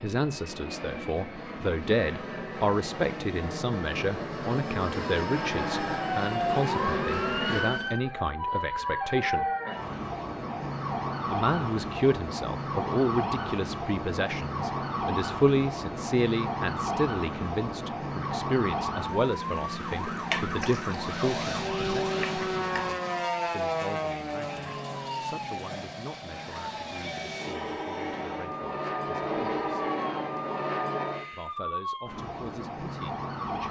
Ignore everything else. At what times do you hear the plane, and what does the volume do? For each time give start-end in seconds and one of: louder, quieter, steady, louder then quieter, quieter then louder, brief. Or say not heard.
0.0-8.0 louder
20.9-31.5 quieter then louder.